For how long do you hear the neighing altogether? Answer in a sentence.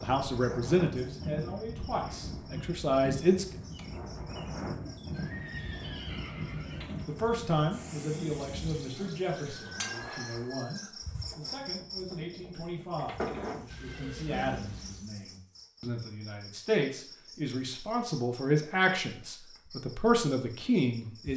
The neighing can be heard for 3 seconds in total.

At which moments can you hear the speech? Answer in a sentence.
The speech can be heard from 0.0 to 3.6 s and from 7.0 to 21.3 s.